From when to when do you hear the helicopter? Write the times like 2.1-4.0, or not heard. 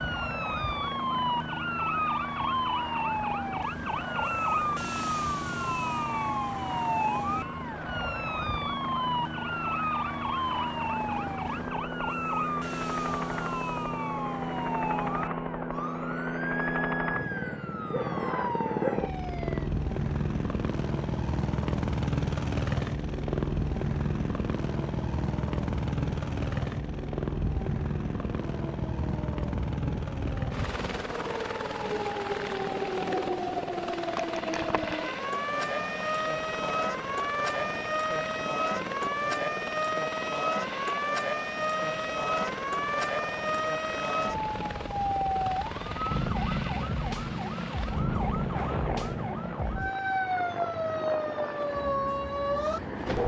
0.0-53.2.